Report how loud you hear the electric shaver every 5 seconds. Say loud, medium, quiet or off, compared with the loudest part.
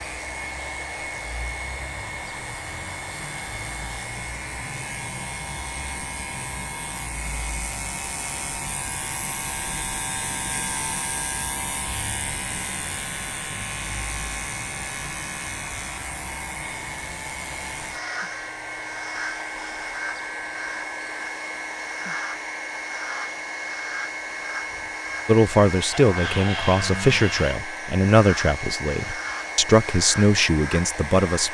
medium, loud, loud, loud, loud, loud, loud.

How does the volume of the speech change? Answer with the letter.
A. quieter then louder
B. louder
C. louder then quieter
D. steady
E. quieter
D.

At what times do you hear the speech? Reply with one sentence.
The speech can be heard from 25.2 to 31.4 s.